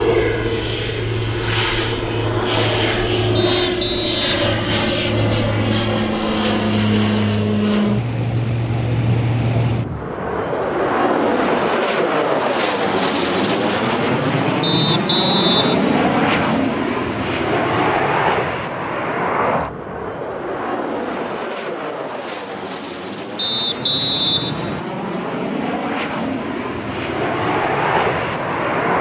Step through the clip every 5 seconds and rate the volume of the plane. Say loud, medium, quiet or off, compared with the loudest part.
loud, loud, loud, loud, medium, loud.